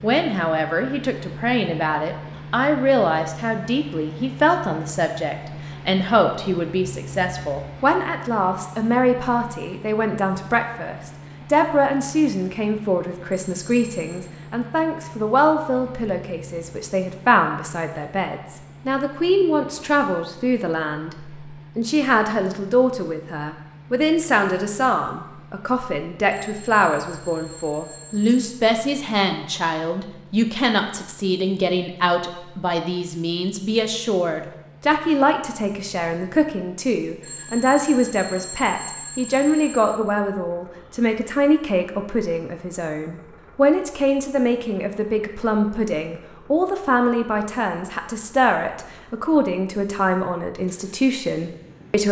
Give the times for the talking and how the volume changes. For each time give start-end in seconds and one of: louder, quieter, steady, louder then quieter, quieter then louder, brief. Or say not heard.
0.0-52.0 steady.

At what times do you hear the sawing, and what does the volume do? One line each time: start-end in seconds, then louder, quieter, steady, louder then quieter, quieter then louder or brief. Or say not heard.
not heard.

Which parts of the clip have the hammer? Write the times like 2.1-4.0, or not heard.
not heard.